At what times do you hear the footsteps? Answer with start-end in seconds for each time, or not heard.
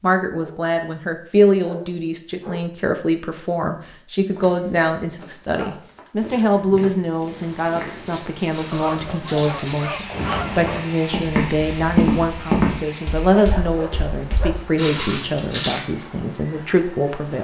4.3-15.8.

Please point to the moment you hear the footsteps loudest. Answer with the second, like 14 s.
12 s.